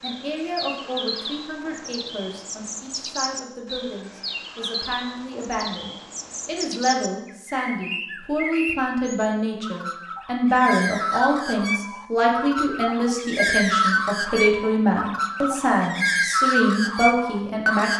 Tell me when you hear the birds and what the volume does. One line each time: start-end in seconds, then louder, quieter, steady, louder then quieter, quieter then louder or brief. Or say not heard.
0.0-17.9 louder.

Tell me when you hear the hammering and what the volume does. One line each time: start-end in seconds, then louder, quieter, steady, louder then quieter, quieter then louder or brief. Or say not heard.
not heard.